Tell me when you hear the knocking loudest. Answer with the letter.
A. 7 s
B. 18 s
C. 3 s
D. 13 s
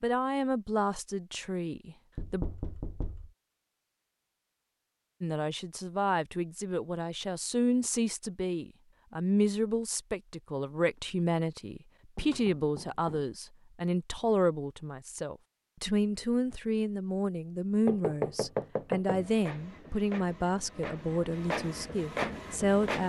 B.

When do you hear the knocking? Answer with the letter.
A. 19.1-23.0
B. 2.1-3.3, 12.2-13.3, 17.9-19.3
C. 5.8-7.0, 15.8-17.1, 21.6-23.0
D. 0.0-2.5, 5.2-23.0
B.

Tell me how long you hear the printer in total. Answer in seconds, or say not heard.
4 s.